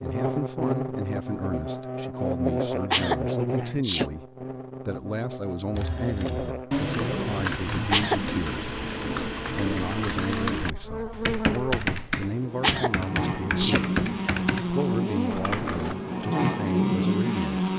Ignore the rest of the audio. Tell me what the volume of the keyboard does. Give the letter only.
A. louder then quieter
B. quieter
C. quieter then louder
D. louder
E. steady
E.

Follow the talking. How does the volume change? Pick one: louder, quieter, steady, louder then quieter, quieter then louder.
steady.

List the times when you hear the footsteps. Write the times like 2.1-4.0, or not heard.
not heard.